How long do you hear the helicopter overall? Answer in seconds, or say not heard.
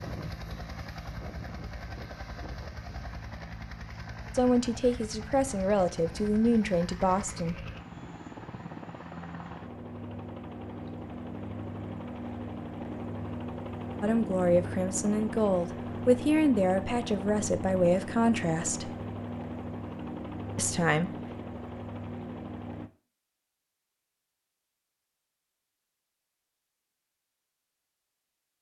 23 s.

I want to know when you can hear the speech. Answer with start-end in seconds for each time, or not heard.
4.3-7.7, 14.0-18.9, 20.6-21.1.